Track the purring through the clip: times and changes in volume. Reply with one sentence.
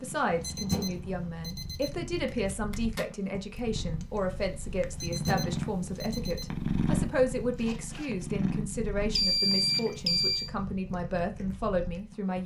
You can hear the purring from 0.0 to 12.4 s, getting louder then quieter.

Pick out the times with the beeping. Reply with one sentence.
You can hear the beeping from 0.3 to 2.1 s, from 4.8 to 6.7 s and from 9.2 to 10.5 s.